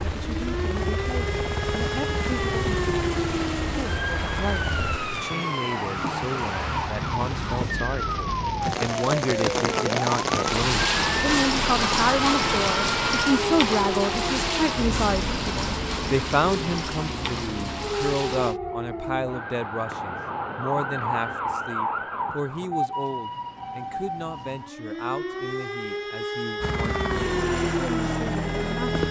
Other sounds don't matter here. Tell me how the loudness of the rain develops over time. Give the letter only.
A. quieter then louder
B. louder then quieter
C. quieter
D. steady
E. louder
B.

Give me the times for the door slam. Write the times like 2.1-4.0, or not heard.
not heard.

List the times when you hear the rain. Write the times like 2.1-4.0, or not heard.
0.0-18.6.